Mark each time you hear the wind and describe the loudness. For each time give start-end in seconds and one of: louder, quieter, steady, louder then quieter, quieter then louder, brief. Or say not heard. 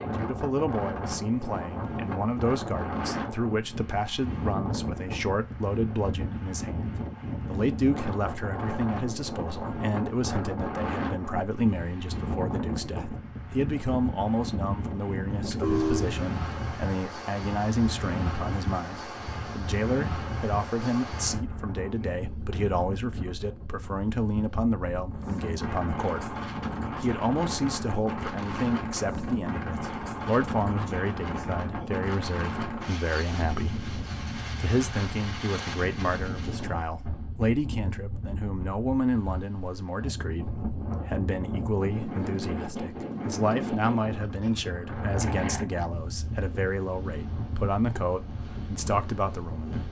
0.0-49.8 steady.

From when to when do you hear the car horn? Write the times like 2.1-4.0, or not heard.
15.3-16.2.